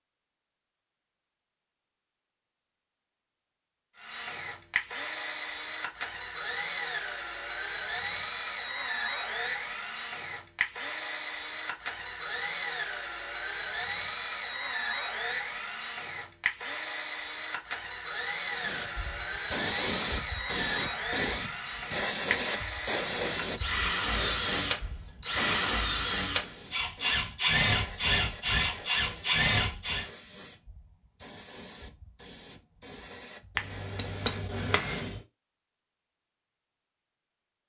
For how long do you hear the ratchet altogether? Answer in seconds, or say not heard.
not heard.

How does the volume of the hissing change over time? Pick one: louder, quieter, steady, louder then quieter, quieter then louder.
quieter.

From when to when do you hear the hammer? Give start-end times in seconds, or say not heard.
33.5-35.2.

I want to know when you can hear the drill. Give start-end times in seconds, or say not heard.
4.0-30.1.